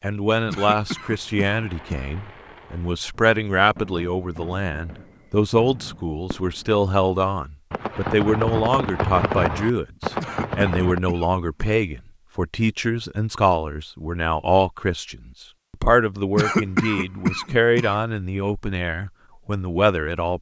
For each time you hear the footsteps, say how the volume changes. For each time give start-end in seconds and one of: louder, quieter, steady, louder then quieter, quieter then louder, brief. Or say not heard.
not heard.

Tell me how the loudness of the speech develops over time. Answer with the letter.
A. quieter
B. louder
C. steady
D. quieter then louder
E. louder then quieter
C.